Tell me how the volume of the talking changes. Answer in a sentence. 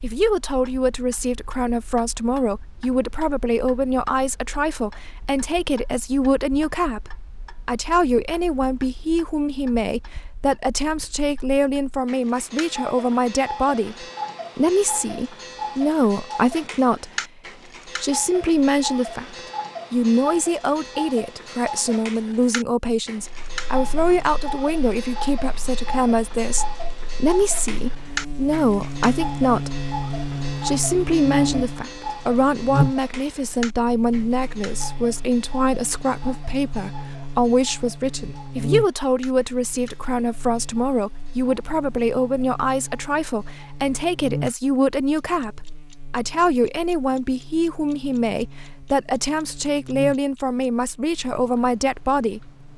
The loudness of the talking stays about the same.